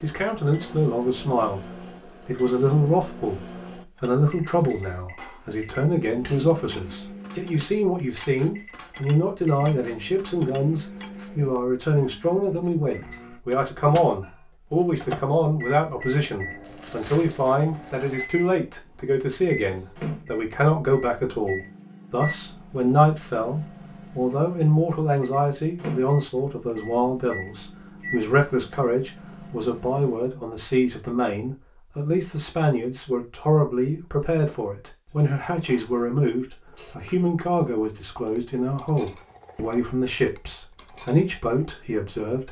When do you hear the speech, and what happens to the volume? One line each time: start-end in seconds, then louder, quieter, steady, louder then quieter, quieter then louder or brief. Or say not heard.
0.0-1.6 brief
2.2-42.4 steady.